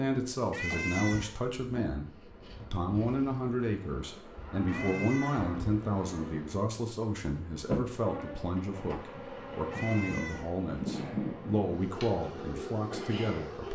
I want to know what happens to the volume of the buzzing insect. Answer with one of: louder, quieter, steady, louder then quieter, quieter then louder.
louder.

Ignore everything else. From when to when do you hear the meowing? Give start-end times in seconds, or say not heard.
0.5-1.9, 4.7-5.5, 9.7-10.6.